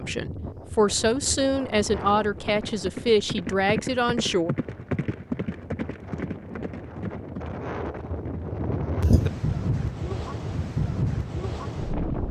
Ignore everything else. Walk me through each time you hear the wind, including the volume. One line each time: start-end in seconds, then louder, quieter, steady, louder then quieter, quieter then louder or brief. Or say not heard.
0.0-12.2 quieter then louder.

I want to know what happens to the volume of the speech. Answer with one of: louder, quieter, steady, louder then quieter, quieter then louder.
steady.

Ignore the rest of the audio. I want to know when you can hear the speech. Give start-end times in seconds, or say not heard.
0.0-4.5.